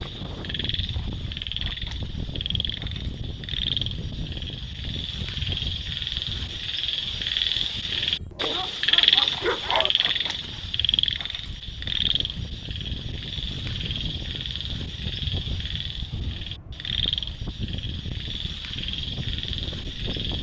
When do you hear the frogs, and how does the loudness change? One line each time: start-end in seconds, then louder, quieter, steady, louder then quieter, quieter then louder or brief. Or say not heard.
0.0-20.3 louder then quieter.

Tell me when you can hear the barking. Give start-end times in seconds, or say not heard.
7.9-9.9.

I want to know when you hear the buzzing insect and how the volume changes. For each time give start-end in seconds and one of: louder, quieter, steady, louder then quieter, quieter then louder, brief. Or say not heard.
not heard.